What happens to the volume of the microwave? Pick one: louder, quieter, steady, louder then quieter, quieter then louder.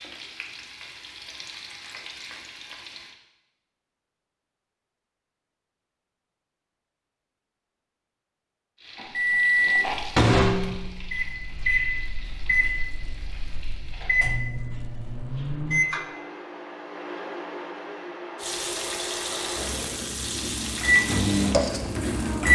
quieter then louder.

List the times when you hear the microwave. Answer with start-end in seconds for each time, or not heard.
9.2-22.4.